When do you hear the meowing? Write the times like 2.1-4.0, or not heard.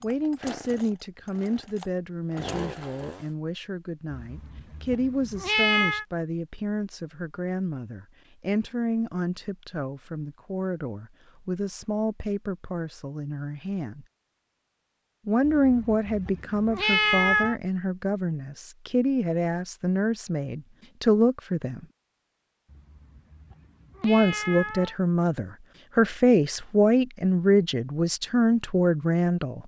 4.1-6.0, 15.4-17.6, 22.7-24.9.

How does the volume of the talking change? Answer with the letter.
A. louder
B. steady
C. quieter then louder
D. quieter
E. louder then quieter
A.